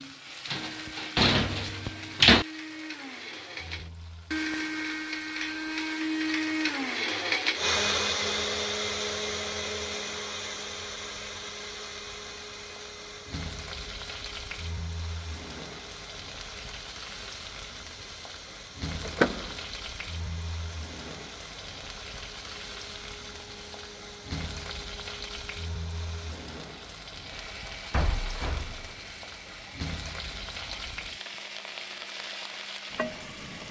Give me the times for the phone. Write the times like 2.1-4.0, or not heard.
not heard.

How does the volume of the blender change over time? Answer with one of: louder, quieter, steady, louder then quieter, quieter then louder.
quieter.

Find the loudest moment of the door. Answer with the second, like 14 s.
2 s.